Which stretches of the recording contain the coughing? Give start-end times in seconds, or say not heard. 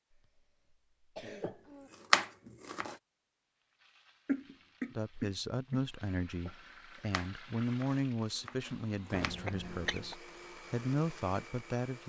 0.1-1.9, 4.2-5.8, 9.1-10.2.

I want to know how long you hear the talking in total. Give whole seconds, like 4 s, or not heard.
7 s.